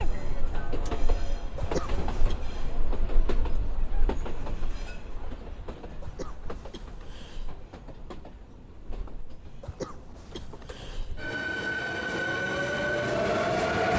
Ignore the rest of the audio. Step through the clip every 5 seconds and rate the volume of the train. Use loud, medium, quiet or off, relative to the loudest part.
medium, quiet, loud.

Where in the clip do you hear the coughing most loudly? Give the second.
2 s.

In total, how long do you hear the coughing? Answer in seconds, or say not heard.
4 s.